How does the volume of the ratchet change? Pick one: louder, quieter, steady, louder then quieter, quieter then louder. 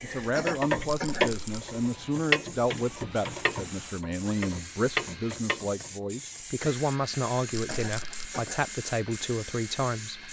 quieter then louder.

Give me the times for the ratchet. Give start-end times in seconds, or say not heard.
0.0-5.9.